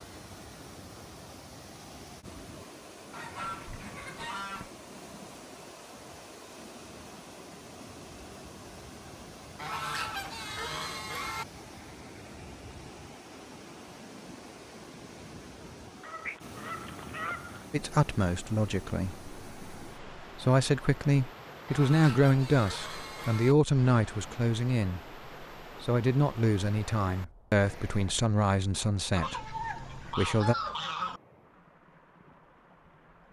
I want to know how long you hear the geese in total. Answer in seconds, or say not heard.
9 s.